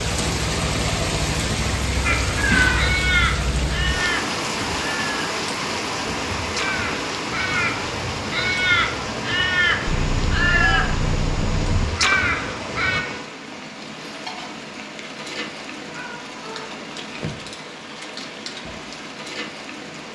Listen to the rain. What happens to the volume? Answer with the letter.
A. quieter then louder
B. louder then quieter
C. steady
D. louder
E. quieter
E.